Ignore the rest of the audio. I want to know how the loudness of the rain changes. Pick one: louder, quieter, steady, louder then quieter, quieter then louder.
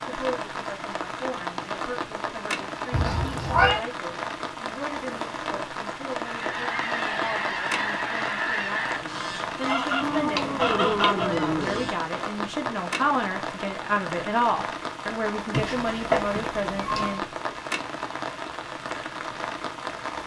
steady.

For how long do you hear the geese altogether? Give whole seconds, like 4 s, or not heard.
6 s.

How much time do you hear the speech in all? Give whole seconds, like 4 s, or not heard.
17 s.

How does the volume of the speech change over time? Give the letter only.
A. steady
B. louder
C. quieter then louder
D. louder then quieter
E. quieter
B.